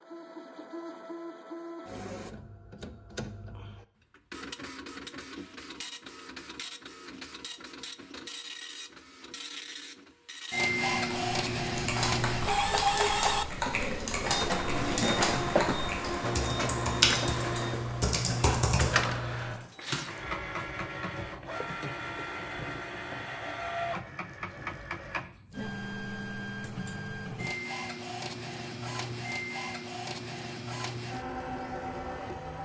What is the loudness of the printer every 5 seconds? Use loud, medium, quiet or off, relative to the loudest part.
quiet, quiet, loud, loud, medium, medium, medium.